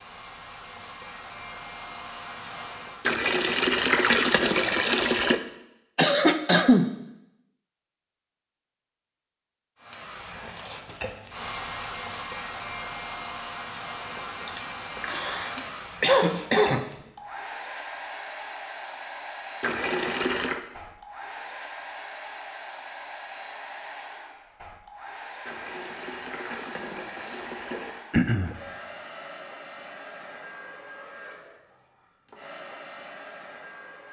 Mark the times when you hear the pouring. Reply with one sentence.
The pouring can be heard from 3.0 to 5.4 s, from 19.6 to 20.6 s and from 25.4 to 28.0 s.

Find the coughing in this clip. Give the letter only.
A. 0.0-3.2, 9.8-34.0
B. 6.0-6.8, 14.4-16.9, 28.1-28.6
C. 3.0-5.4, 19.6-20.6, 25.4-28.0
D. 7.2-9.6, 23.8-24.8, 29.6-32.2
B.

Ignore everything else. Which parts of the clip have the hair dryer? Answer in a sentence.
You can hear the hair dryer from 0.0 to 3.2 s and from 9.8 to 34.0 s.